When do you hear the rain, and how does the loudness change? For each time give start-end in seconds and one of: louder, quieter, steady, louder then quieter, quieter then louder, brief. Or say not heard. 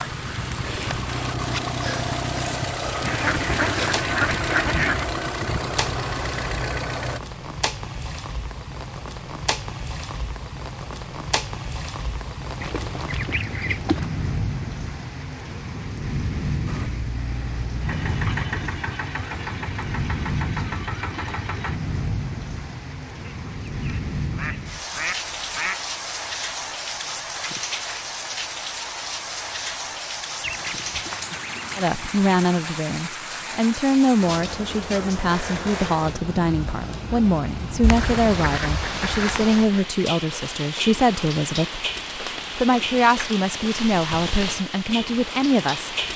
0.0-46.1 steady.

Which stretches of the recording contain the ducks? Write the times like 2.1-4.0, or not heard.
3.0-5.1, 12.6-14.1, 23.2-25.8, 30.4-32.2, 37.8-39.8.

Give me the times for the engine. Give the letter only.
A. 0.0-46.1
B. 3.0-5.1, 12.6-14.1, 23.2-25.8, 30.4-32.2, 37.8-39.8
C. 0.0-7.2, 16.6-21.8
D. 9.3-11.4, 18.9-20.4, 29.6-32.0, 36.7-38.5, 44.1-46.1
C.